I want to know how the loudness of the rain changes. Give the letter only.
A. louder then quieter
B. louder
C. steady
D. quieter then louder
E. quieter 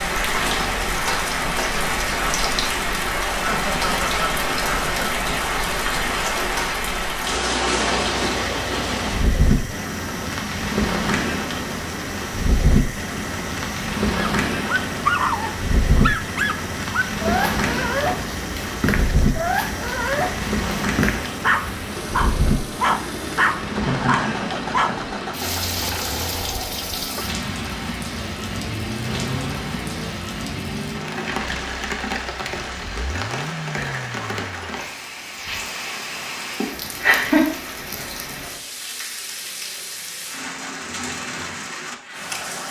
E.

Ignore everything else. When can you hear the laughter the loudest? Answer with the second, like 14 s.
37 s.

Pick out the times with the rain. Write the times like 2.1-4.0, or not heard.
0.0-42.6.